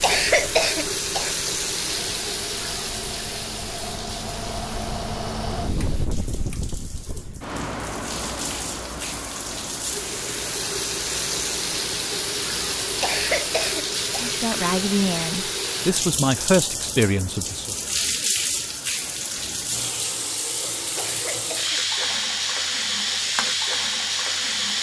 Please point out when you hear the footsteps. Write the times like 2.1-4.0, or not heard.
not heard.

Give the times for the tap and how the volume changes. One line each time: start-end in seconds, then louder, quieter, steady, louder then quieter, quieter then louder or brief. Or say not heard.
0.0-24.7 quieter then louder.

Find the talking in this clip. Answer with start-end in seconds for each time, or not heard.
14.2-17.8.